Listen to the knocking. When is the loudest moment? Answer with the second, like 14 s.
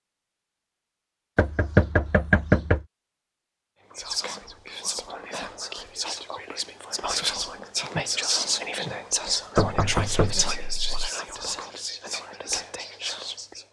2 s.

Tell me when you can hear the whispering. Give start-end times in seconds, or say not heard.
3.9-13.6.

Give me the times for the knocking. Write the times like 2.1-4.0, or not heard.
1.4-2.8, 9.6-11.1.